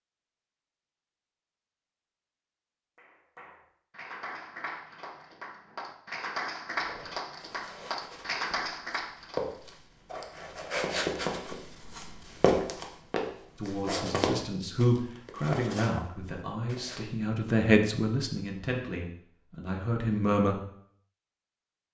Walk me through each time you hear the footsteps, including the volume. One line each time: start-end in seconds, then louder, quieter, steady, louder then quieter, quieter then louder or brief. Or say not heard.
6.7-17.1 louder then quieter.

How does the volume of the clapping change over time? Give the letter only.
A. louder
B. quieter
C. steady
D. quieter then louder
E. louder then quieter
A.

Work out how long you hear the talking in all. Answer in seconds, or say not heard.
7 s.